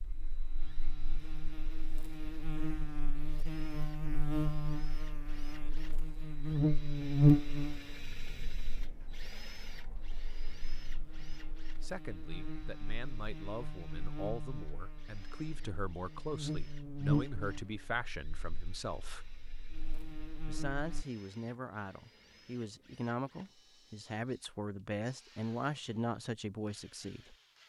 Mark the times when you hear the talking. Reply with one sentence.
The talking can be heard from 11.8 to 19.3 s and from 20.4 to 27.4 s.